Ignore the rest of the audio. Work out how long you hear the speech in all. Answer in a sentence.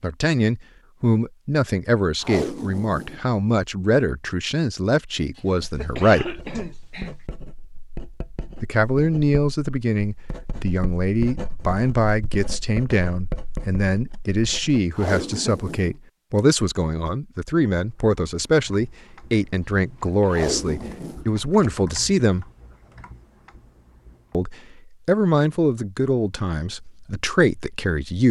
The speech can be heard for 24 seconds in total.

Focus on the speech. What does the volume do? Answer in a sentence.
The volume of the speech stays about the same.